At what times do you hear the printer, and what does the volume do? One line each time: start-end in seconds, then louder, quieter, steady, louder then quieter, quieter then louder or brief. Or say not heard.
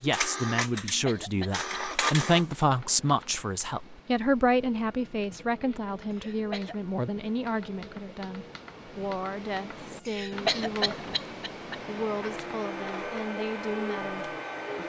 0.0-2.5 brief
4.5-14.8 louder.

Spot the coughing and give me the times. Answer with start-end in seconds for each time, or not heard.
0.8-1.6, 6.1-6.8, 10.1-11.8.